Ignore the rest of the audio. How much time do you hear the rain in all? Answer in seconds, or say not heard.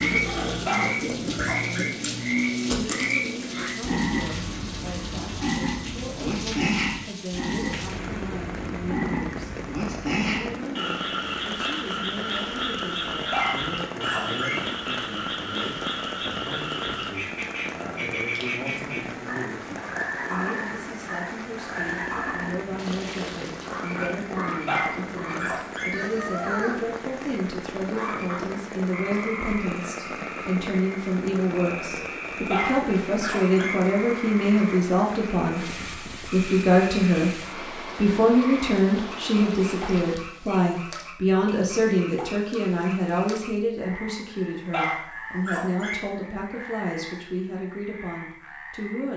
40 s.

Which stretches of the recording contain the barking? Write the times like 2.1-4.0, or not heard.
0.7-1.9, 13.3-14.6, 24.6-25.9, 32.5-33.8, 44.5-46.0.